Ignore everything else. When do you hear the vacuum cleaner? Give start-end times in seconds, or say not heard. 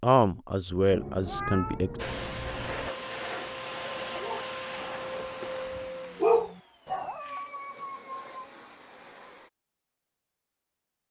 1.9-9.5.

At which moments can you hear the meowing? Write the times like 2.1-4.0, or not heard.
0.9-2.9, 7.0-8.2.